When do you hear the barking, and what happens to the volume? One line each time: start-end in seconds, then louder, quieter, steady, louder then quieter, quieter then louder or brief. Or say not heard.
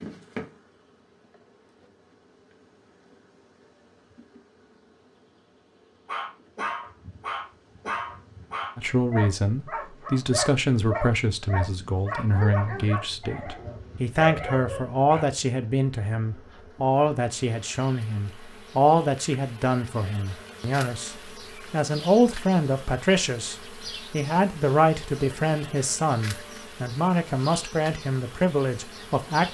6.0-15.2 steady.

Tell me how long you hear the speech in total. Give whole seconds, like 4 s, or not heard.
21 s.